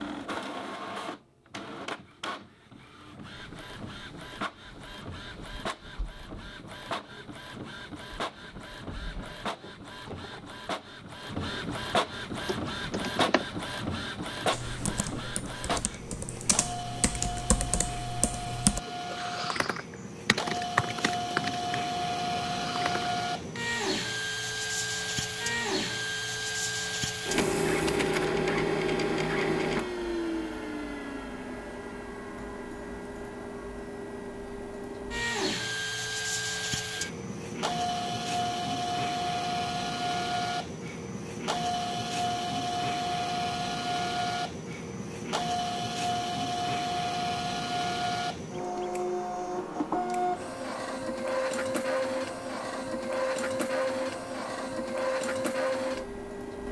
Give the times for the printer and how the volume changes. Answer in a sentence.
You can hear the printer from 0.0 to 56.6 s, getting louder.